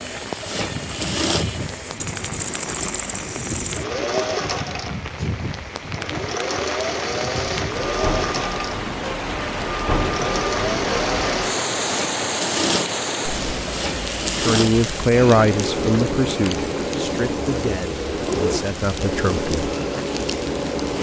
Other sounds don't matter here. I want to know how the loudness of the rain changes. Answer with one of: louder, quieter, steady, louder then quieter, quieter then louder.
louder then quieter.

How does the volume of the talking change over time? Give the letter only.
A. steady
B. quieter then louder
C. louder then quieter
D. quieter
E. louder
D.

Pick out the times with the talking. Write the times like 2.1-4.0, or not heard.
14.3-19.6.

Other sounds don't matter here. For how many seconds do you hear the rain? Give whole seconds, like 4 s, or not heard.
21 s.